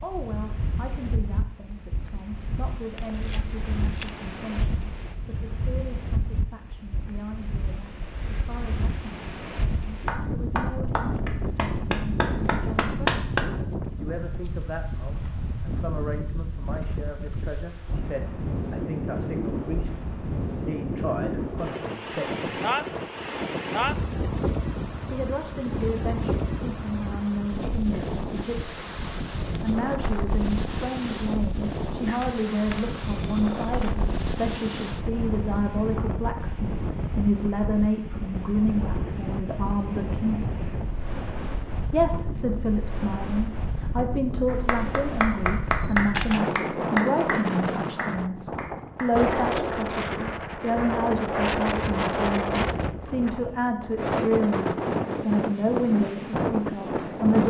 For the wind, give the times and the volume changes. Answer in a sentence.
The wind can be heard from 0.0 to 57.4 s, getting louder.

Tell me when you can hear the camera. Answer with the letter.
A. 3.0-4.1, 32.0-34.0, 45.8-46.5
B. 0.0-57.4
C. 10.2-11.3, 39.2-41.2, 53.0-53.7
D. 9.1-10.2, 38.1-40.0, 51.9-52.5
A.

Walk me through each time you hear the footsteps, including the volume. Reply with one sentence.
The footsteps can't be heard in this clip.